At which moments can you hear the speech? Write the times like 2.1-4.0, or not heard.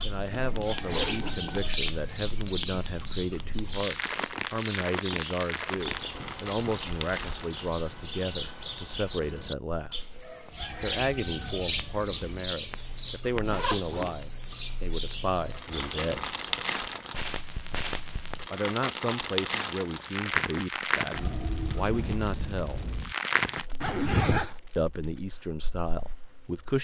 0.0-10.1, 10.8-16.3, 18.5-22.9, 24.8-26.7.